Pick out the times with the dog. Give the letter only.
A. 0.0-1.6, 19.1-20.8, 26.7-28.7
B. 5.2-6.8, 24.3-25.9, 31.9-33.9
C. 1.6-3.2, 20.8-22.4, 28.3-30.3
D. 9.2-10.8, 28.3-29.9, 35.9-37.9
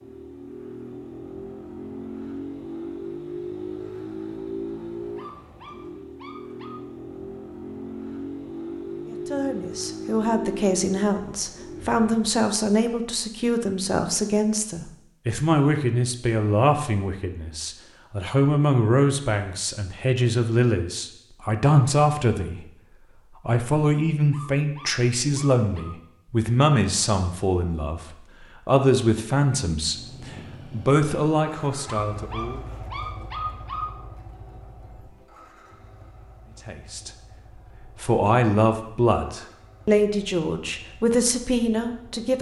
B.